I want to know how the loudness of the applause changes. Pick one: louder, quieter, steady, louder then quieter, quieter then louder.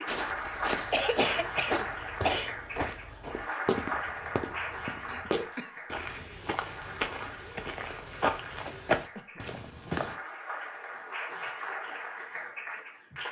quieter then louder.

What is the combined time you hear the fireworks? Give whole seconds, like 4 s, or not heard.
not heard.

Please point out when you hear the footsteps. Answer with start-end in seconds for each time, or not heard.
0.1-10.2.